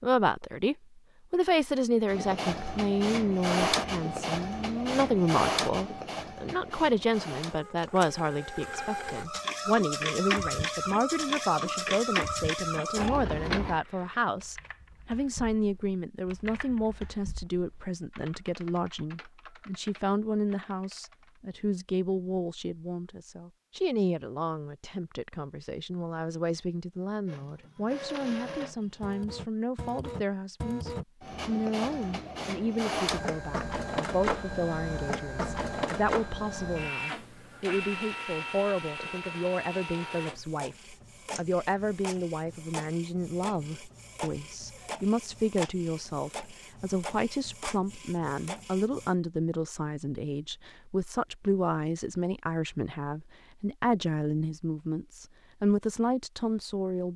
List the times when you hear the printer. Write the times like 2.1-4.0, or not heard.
2.0-13.8, 27.2-49.1.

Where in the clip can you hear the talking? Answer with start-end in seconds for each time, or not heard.
0.0-57.1.